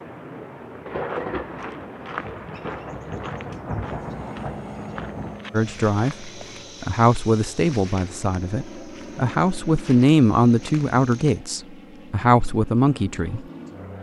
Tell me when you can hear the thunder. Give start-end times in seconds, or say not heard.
0.8-5.5.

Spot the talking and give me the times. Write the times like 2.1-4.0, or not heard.
5.5-13.4.